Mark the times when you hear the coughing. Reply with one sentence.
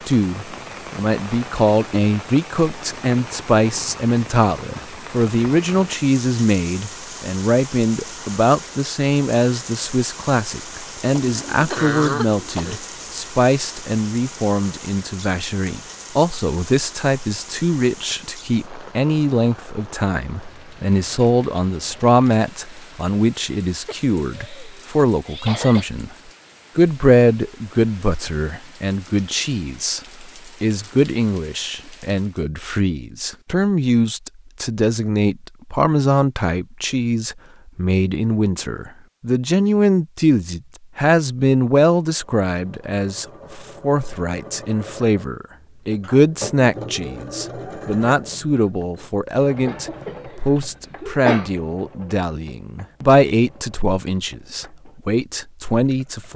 You can hear the coughing from 11.2 to 12.8 s, from 23.9 to 25.9 s and from 49.6 to 51.5 s.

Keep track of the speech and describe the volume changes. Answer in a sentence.
The volume of the speech stays about the same.